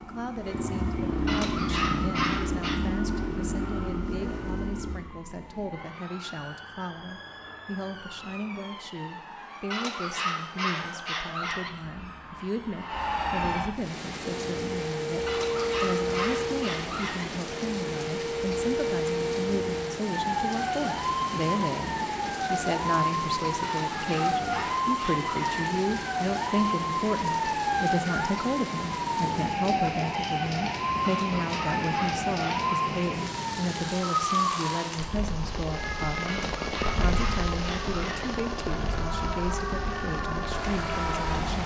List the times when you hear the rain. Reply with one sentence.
You can hear the rain from 13.7 to 41.6 s.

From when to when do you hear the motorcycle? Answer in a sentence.
You can hear the motorcycle from 0.0 to 5.0 s.